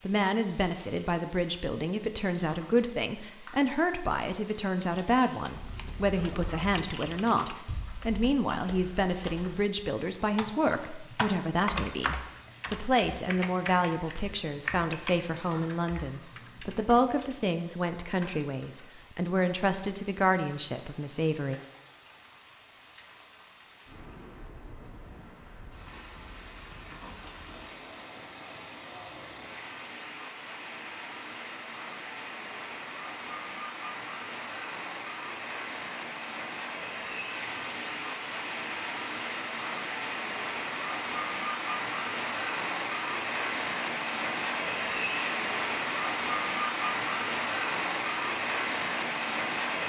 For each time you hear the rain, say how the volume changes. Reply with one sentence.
You can hear the rain from 0.0 to 49.8 s, getting louder.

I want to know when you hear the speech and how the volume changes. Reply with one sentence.
You can hear the speech from 0.1 to 21.6 s, at a steady volume.